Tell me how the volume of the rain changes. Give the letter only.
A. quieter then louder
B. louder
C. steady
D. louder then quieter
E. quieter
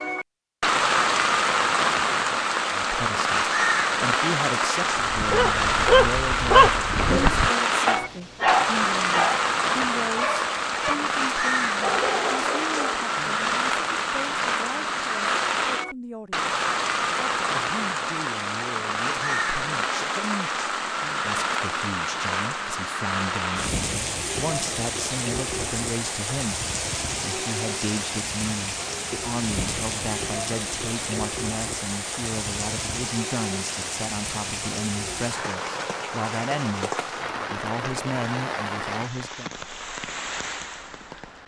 E.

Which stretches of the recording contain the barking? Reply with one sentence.
You can hear the barking from 5.1 to 13.1 s.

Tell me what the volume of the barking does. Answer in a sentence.
The volume of the barking goes down.